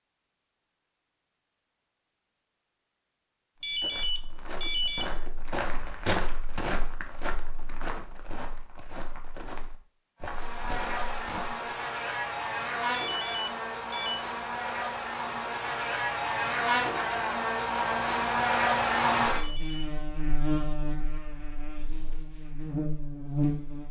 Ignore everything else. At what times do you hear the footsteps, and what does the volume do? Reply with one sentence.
The footsteps can be heard from 3.6 to 11.6 s, getting louder then quieter.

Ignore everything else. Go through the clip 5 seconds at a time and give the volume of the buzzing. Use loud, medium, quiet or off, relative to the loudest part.
off, off, medium, loud, medium.